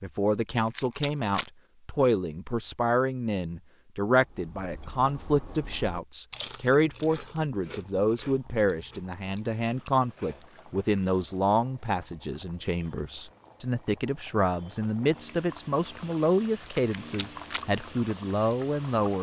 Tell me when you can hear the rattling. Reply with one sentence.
You can hear the rattling from 0.6 to 1.5 s and from 16.7 to 17.6 s.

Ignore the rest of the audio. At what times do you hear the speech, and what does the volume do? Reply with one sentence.
The speech can be heard from 0.0 to 19.1 s, at a steady volume.